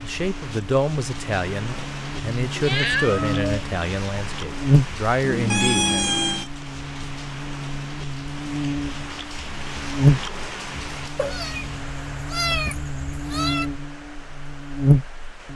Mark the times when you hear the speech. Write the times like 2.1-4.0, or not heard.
0.0-6.0.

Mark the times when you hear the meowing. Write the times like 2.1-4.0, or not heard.
2.5-3.4, 5.2-6.5, 11.2-13.7.